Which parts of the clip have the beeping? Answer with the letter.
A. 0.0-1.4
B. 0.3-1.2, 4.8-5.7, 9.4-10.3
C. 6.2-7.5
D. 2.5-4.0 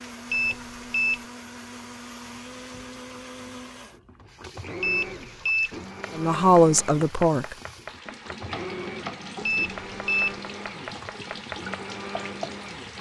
B.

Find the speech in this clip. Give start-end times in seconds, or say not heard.
6.2-7.5.